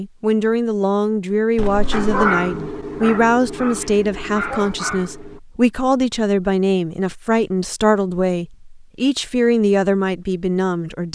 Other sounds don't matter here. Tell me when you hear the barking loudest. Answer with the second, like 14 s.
2 s.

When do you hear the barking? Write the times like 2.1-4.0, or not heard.
1.9-5.4.